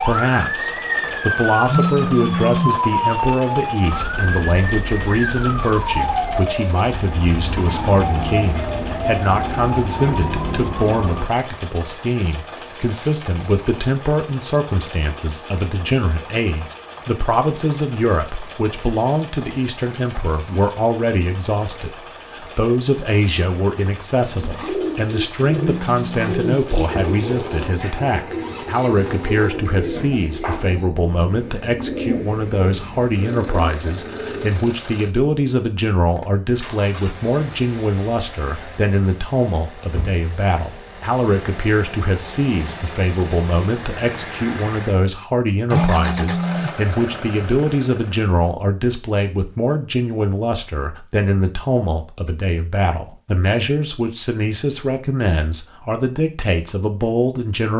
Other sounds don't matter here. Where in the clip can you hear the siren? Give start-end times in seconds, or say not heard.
0.0-11.2.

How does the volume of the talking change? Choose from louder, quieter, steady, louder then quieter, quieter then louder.
steady.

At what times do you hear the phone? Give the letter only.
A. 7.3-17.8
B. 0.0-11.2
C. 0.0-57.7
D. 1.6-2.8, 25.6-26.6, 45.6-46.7
D.